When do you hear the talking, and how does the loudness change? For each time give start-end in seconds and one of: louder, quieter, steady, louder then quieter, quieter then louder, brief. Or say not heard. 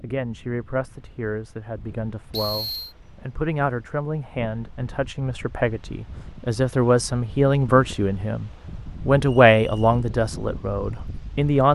0.0-11.7 louder.